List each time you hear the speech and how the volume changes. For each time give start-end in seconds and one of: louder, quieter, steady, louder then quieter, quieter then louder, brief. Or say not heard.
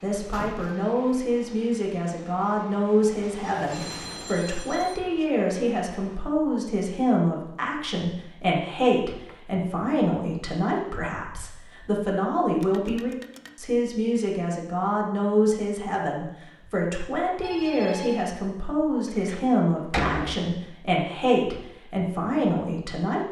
0.0-23.2 steady.